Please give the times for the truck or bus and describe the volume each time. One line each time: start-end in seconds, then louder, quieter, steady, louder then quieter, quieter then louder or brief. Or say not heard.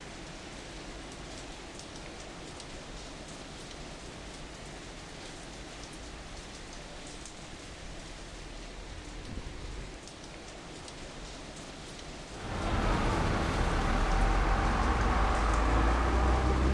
12.3-16.6 steady.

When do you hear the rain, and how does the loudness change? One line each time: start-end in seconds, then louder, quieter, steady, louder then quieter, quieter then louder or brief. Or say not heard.
0.0-16.6 steady.